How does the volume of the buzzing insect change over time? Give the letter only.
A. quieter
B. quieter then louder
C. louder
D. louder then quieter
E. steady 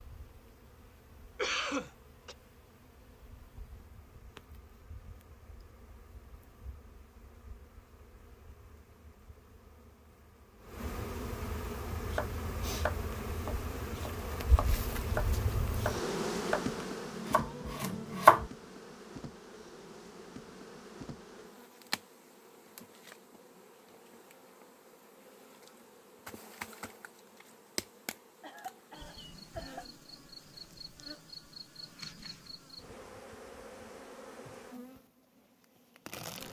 D.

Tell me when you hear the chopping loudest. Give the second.
18 s.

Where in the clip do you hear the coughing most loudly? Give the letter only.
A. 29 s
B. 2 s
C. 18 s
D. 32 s
B.